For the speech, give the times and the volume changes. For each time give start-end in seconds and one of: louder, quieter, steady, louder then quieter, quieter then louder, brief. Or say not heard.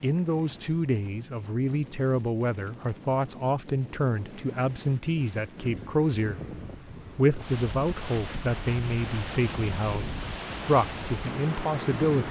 0.0-6.5 steady
7.2-12.2 louder then quieter.